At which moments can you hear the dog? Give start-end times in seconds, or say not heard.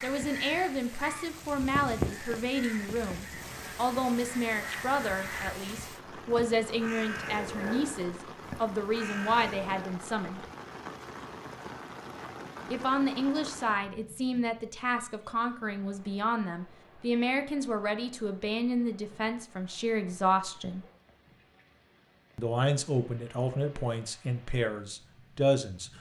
not heard.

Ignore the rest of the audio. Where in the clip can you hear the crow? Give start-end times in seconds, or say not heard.
0.0-9.8.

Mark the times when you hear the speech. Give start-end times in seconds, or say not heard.
0.0-10.4, 12.7-20.9, 22.4-25.9.